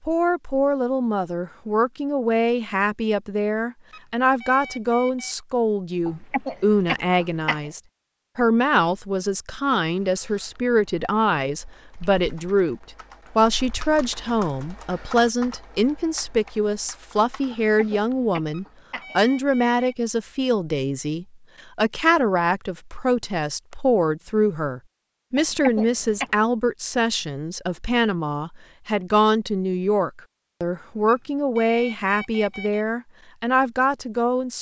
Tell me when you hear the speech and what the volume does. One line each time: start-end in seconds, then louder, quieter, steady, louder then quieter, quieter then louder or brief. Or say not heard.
0.1-34.5 steady.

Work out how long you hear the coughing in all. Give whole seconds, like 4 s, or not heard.
4 s.